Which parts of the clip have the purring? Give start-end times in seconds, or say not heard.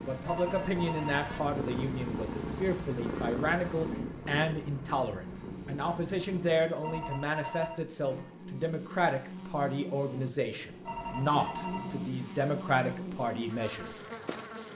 0.0-6.7.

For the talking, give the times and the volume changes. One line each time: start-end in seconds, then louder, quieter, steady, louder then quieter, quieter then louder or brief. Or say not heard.
0.0-13.9 steady.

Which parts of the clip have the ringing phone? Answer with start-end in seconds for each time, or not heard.
0.2-1.4, 6.8-7.8, 10.8-12.1.